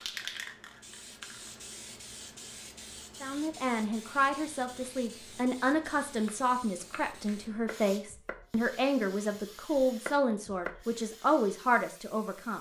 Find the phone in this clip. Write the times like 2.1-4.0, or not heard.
not heard.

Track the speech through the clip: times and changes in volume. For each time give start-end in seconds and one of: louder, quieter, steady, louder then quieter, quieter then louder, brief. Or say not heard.
3.2-12.5 steady.